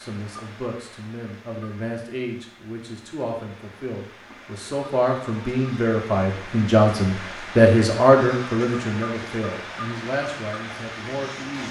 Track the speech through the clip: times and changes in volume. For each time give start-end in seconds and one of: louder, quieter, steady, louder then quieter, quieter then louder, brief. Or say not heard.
0.0-11.6 louder then quieter.